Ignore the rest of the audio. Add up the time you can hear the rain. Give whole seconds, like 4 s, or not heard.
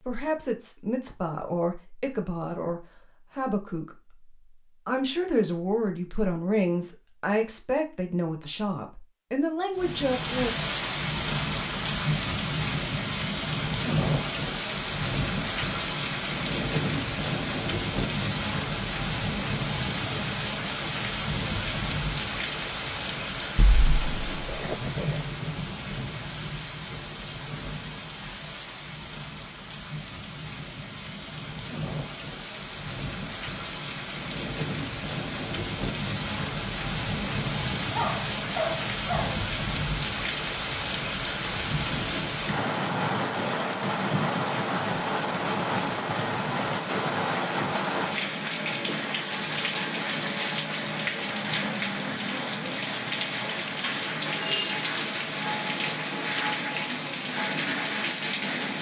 49 s.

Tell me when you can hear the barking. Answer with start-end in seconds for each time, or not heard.
23.6-25.2, 38.0-39.5.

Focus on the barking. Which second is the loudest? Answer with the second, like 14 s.
39 s.